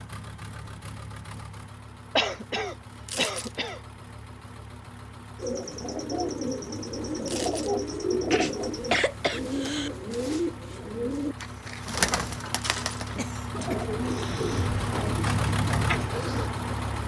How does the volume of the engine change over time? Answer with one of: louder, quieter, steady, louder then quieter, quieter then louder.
louder.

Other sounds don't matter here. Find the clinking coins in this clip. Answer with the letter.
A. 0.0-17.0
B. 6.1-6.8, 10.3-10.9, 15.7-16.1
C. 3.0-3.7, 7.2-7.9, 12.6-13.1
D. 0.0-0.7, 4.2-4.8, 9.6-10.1
C.